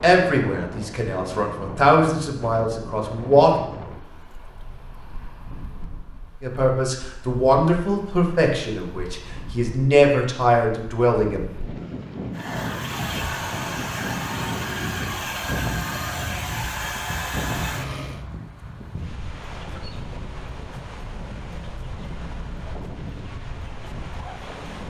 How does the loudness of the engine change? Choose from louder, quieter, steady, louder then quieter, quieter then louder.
steady.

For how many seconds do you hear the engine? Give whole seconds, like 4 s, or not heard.
6 s.